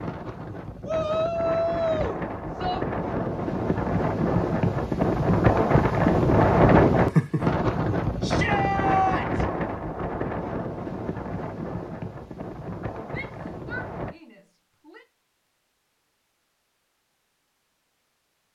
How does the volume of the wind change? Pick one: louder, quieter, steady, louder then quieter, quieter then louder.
louder then quieter.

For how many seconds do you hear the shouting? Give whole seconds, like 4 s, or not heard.
5 s.